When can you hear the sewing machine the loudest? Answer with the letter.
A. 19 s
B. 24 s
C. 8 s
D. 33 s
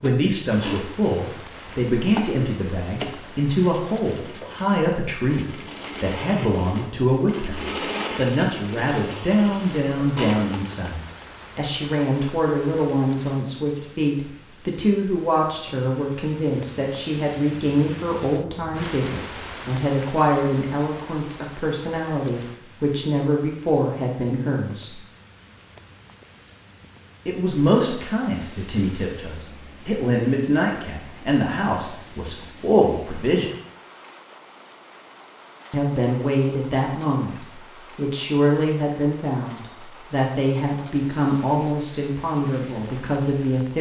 C.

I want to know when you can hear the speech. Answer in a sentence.
The speech can be heard from 0.0 to 25.0 s, from 27.2 to 33.5 s and from 35.7 to 43.7 s.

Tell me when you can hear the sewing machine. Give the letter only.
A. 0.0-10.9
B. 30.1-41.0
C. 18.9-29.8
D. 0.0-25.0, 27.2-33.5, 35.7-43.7
A.